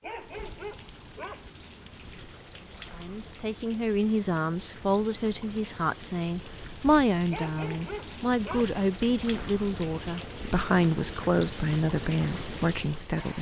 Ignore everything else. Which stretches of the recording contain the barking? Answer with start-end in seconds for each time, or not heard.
0.0-1.5, 7.3-8.8.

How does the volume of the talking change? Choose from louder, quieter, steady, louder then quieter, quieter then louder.
steady.